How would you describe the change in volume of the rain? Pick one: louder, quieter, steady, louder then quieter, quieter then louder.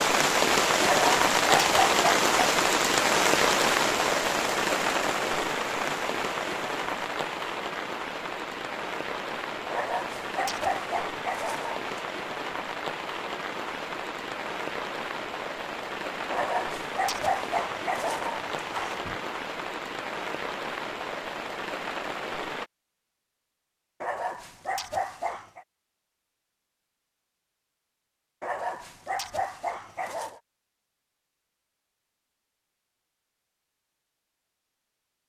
quieter.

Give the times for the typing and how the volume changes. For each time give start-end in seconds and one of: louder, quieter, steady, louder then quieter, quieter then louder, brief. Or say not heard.
not heard.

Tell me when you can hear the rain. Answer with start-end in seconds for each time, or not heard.
0.0-22.7.